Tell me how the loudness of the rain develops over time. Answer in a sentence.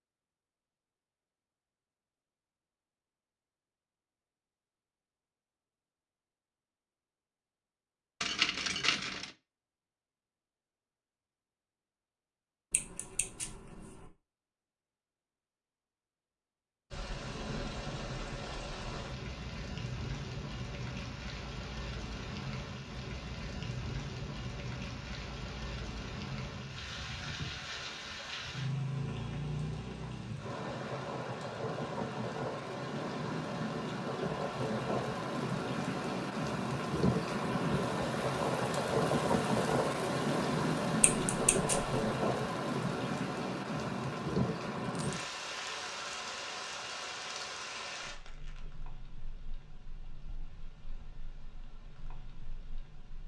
The volume of the rain goes up, then down.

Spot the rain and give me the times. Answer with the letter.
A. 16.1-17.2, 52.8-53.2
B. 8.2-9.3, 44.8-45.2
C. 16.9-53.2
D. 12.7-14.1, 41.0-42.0
C.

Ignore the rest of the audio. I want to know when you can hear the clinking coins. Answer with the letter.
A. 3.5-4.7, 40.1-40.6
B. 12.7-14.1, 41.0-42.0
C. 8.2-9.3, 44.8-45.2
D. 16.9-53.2
C.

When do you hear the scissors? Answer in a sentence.
You can hear the scissors from 12.7 to 14.1 s and from 41.0 to 42.0 s.